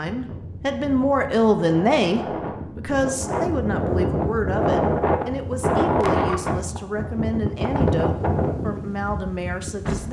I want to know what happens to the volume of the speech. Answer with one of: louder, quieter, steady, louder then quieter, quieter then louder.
quieter.